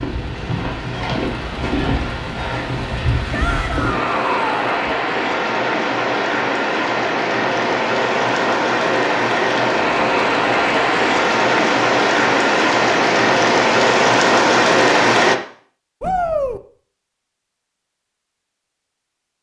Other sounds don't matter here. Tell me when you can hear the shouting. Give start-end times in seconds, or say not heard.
3.3-4.8, 16.0-16.6.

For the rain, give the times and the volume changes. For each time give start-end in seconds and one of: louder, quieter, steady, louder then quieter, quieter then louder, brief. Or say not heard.
0.0-15.3 louder.